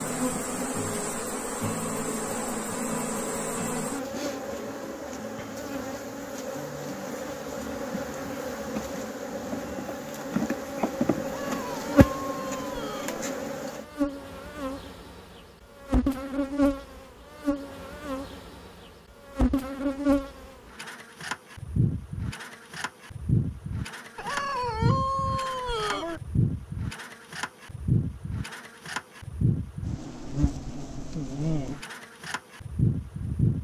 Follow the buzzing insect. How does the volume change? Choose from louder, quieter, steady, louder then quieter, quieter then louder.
steady.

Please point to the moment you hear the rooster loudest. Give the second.
25 s.